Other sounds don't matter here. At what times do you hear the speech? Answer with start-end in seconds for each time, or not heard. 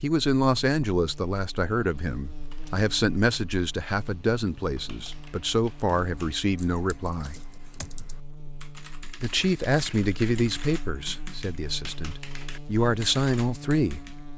0.0-7.3, 9.2-14.1.